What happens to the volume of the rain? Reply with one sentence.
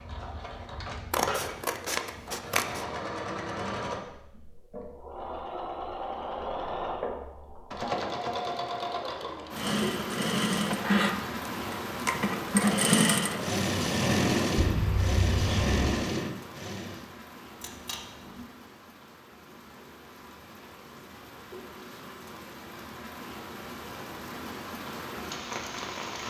The loudness of the rain goes down, then up.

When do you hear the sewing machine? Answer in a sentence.
You can hear the sewing machine from 0.0 to 17.1 s.